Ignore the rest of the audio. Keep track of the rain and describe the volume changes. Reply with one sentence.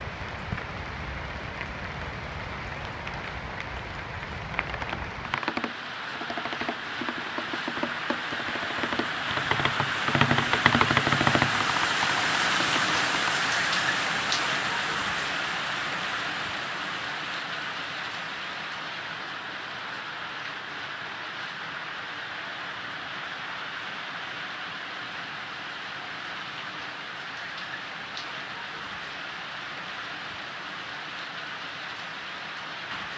The volume of the rain goes up, then down.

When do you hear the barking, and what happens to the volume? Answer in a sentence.
The barking can't be heard in this clip.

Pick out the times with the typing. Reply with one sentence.
You can hear the typing from 4.7 to 13.3 s.